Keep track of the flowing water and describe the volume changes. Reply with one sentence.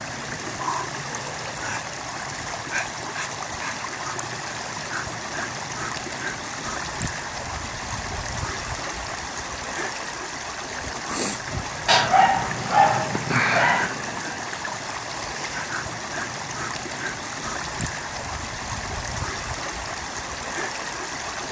The volume of the flowing water stays about the same.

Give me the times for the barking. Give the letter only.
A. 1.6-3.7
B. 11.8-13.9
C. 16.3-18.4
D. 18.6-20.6
B.